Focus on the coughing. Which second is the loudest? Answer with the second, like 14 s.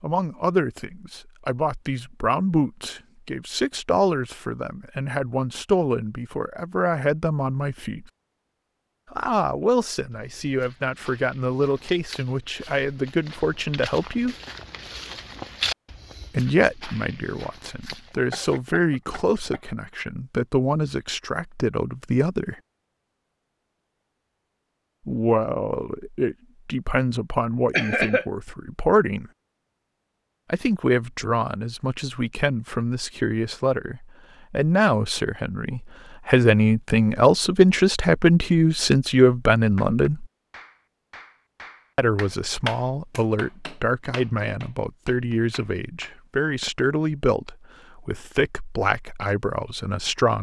28 s.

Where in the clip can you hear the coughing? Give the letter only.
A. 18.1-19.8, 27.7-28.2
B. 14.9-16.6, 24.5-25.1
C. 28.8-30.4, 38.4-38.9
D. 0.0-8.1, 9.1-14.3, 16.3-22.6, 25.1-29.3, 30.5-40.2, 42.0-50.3
A.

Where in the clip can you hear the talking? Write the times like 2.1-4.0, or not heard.
0.0-8.1, 9.1-14.3, 16.3-22.6, 25.1-29.3, 30.5-40.2, 42.0-50.3.